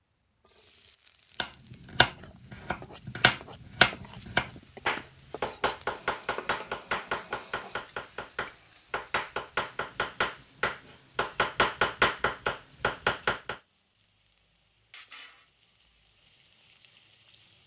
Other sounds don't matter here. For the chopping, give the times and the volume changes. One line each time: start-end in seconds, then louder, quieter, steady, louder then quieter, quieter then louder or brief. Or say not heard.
1.4-13.6 quieter then louder.